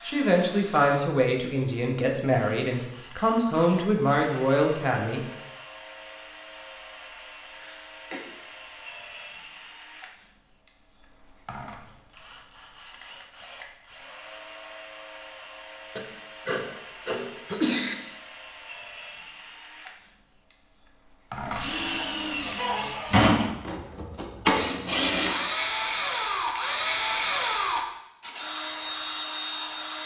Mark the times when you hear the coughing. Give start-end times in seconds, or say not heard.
7.5-8.2, 15.9-17.9.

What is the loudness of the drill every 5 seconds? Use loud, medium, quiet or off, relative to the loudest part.
quiet, quiet, quiet, quiet, loud, loud.